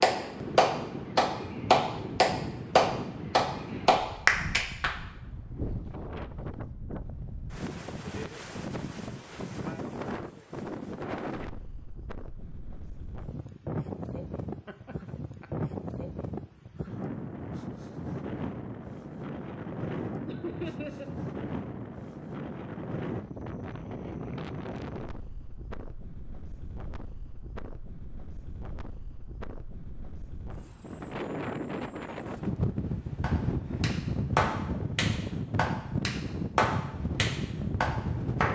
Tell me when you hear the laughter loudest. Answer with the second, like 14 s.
21 s.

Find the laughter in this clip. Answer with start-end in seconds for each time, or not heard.
14.7-15.5, 20.2-21.1.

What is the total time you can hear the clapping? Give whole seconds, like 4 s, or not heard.
10 s.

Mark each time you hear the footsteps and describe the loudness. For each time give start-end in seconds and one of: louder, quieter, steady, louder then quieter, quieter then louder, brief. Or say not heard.
not heard.